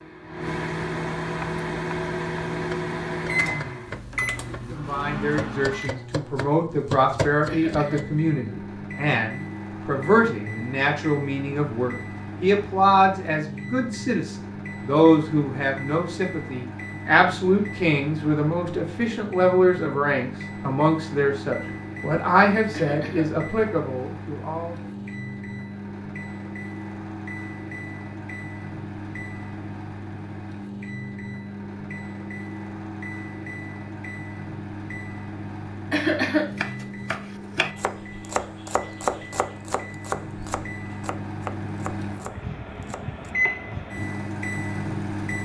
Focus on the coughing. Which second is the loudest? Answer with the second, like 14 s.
36 s.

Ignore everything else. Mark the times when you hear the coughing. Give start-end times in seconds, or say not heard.
7.5-8.1, 22.7-23.3, 35.9-36.5.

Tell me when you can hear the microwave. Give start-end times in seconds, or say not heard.
0.0-45.4.